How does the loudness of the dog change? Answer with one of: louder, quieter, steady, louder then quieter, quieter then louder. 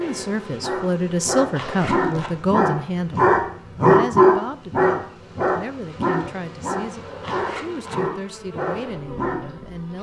louder then quieter.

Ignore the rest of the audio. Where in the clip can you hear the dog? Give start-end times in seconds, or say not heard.
0.6-9.6.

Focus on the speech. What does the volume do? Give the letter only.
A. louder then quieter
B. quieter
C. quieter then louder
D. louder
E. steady
B.